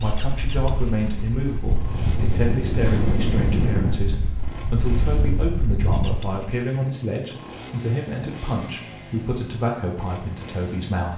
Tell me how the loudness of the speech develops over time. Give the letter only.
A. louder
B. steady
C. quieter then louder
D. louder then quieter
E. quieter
B.